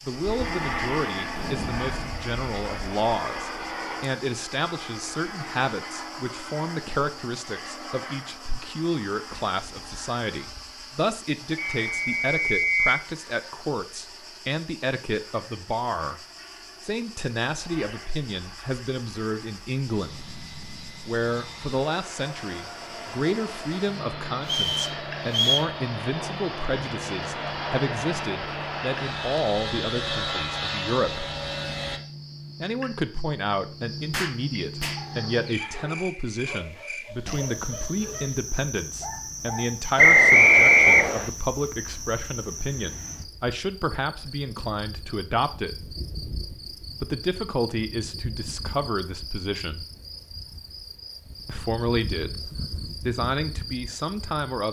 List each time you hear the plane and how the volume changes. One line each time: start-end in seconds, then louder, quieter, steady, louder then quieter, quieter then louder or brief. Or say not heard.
0.0-32.0 quieter then louder.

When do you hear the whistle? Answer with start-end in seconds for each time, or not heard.
11.6-13.1, 24.4-25.7, 40.0-41.2.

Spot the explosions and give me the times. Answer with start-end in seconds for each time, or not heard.
1.3-2.1, 34.1-35.0.